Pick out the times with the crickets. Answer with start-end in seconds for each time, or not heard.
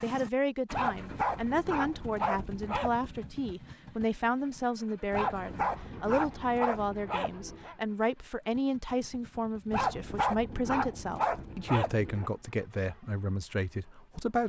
not heard.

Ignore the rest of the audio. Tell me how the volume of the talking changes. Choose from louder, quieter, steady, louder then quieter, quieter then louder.
steady.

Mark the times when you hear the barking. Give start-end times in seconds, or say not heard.
0.7-3.0, 5.1-7.8, 9.7-12.3.